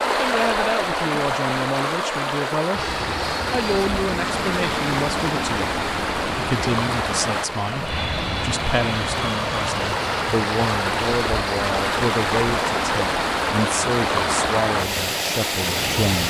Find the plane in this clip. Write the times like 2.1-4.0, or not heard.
2.7-16.2.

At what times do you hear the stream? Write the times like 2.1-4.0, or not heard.
0.0-16.2.